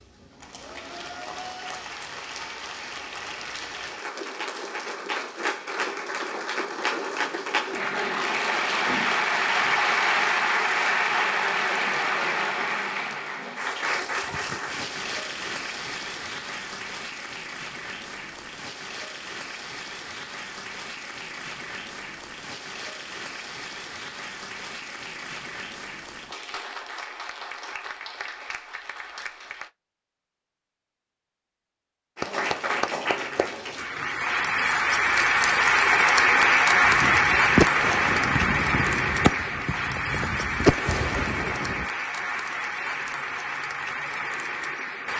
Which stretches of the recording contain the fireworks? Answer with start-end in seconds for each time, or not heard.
36.8-41.9.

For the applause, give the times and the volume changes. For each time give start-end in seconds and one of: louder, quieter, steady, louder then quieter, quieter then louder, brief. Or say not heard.
0.0-29.7 louder then quieter
32.1-45.1 louder then quieter.